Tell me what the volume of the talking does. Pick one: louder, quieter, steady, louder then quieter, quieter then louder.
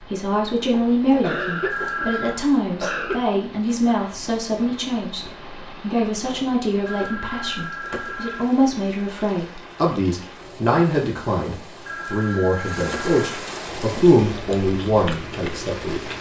steady.